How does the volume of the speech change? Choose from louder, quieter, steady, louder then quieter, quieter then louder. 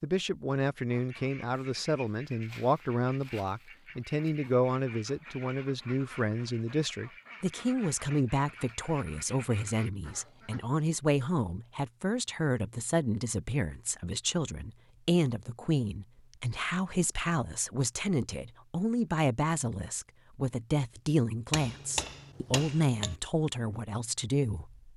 steady.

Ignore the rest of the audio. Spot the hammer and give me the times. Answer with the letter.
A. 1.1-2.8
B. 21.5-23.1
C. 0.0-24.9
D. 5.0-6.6
B.